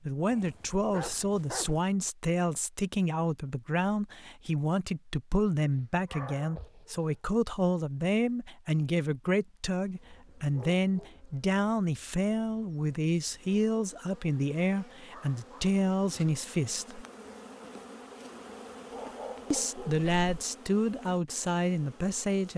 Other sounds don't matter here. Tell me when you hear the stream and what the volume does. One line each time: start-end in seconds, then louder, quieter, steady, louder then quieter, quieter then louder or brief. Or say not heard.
not heard.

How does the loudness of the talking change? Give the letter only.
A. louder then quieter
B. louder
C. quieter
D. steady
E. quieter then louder
D.